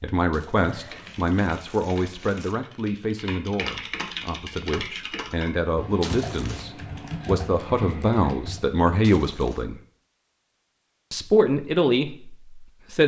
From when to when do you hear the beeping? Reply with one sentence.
The beeping can't be heard in this clip.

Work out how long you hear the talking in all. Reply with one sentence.
You can hear the talking for 12 seconds altogether.